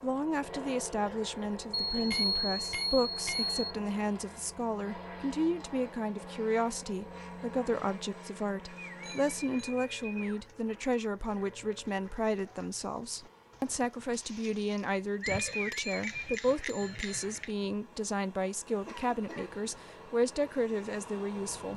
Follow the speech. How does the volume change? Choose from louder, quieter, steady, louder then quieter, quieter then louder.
steady.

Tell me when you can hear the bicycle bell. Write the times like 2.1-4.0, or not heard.
1.9-3.6, 9.0-9.7, 15.2-17.4.